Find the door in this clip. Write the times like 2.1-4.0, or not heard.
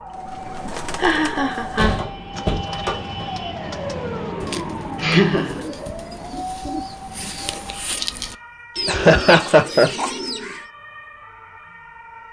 1.6-3.3.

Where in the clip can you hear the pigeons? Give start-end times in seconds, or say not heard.
0.1-10.7.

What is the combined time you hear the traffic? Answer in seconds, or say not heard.
not heard.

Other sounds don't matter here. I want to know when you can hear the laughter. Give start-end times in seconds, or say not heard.
0.7-2.4, 5.0-5.7, 8.8-9.9.